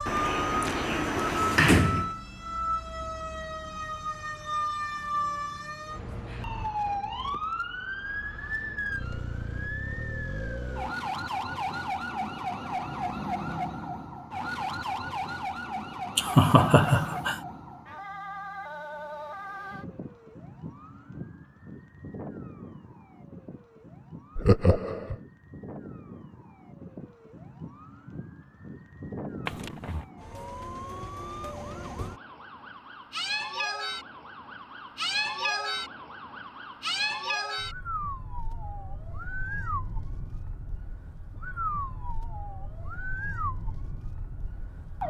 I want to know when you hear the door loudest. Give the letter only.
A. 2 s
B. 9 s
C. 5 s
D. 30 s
A.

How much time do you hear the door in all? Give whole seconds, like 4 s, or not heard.
3 s.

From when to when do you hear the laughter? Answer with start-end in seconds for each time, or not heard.
16.1-17.4, 24.4-25.1.